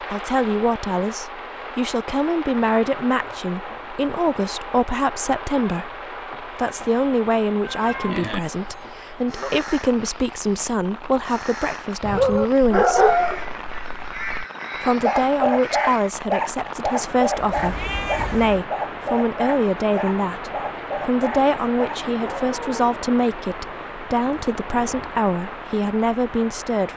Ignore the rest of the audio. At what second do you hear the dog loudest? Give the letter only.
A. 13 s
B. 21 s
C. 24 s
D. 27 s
A.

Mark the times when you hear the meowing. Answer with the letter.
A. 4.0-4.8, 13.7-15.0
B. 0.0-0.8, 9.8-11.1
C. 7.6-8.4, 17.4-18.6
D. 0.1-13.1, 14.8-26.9
C.